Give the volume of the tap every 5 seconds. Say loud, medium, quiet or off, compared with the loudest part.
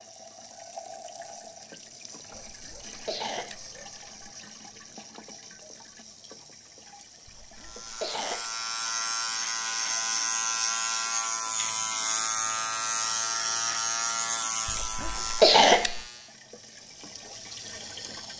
loud, medium, off, loud.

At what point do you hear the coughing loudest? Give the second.
16 s.